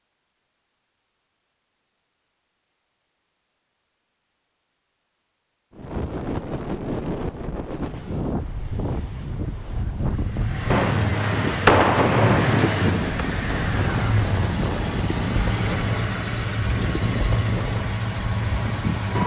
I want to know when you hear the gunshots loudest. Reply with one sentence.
The volume of the gunshots peaks at 12 seconds.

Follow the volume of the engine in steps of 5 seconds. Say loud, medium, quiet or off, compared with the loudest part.
off, off, loud, loud.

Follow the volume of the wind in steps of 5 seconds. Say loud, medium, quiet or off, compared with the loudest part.
off, loud, loud, loud.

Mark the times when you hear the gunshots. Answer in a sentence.
The gunshots can be heard from 10.7 to 13.1 s.